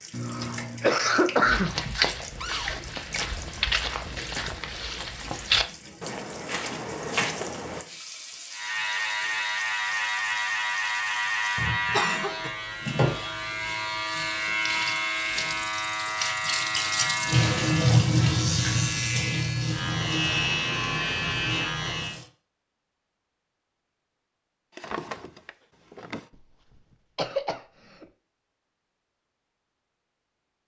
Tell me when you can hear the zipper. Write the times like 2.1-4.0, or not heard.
not heard.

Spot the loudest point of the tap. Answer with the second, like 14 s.
18 s.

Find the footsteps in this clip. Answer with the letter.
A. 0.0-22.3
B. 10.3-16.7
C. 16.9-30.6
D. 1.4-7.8
D.